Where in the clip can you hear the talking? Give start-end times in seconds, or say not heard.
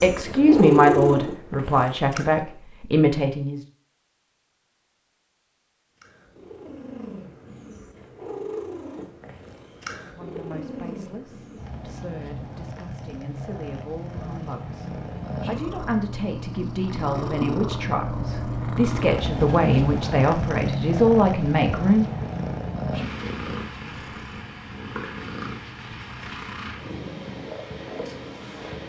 0.0-3.6, 10.0-22.1.